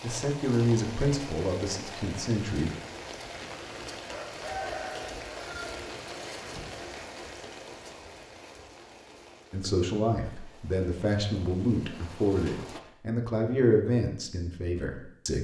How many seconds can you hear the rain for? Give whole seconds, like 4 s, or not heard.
13 s.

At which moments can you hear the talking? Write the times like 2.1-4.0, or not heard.
0.0-2.8, 9.5-15.3.